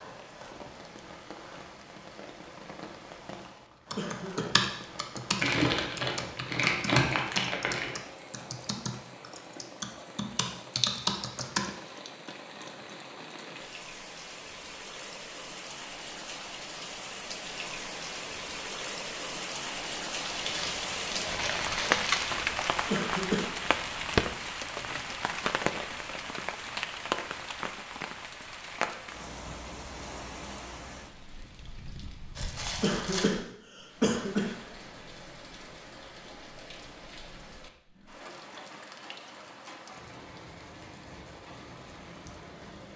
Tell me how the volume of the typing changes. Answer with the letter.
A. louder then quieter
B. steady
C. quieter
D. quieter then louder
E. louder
D.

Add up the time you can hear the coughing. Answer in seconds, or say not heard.
2 s.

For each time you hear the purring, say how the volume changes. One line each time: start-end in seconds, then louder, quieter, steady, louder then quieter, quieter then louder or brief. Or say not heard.
not heard.